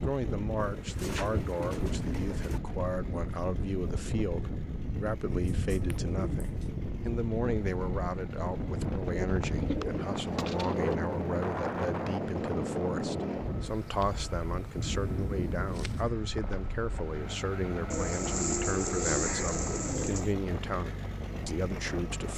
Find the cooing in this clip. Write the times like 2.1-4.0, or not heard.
0.6-2.6, 5.3-6.8, 9.1-10.9, 13.7-16.1, 17.9-20.4.